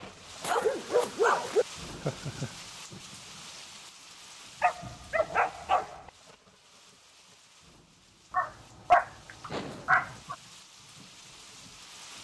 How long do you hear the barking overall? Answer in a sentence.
The barking can be heard for 5 seconds in total.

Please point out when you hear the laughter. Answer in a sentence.
You can hear the laughter from 1.9 to 2.5 s and from 9.4 to 10.3 s.